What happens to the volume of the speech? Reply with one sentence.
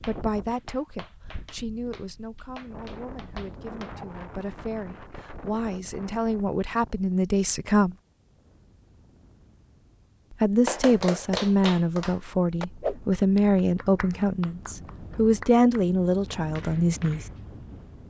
The loudness of the speech goes up.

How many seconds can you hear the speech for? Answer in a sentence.
The speech can be heard for 15 seconds in total.